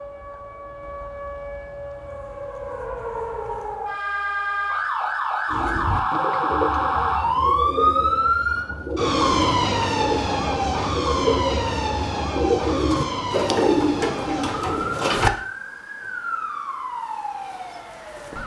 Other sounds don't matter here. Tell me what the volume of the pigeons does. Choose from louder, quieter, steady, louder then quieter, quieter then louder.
louder.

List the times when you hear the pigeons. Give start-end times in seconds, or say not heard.
5.5-15.3.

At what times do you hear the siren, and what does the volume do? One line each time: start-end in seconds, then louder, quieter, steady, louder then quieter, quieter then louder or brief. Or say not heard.
0.0-18.4 louder then quieter.